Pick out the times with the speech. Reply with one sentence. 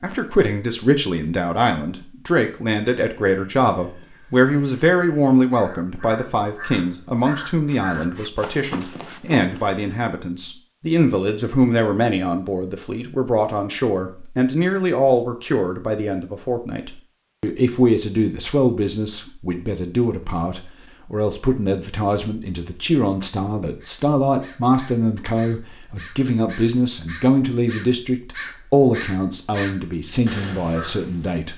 The speech can be heard from 0.0 to 31.5 s.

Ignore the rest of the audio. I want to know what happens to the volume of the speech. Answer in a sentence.
The loudness of the speech stays about the same.